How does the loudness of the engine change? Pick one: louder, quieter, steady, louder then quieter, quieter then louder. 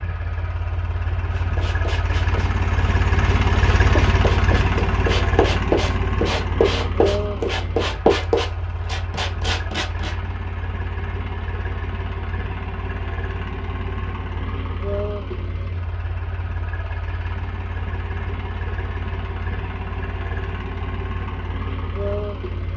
quieter.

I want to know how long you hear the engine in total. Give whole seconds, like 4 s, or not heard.
23 s.